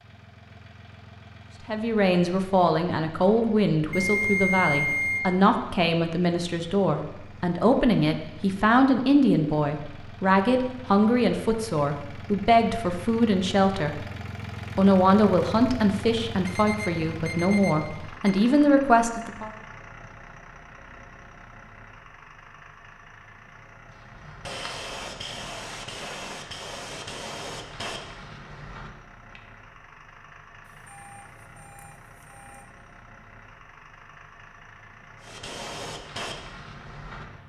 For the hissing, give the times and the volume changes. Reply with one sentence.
The hissing can be heard from 23.9 to 29.4 s, getting quieter; and briefly from 35.2 to 37.2 s.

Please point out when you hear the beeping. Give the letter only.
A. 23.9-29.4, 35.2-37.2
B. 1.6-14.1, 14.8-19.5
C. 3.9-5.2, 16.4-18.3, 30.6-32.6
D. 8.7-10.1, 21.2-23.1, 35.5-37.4
C.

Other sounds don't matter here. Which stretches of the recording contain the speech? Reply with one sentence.
You can hear the speech from 1.6 to 14.1 s and from 14.8 to 19.5 s.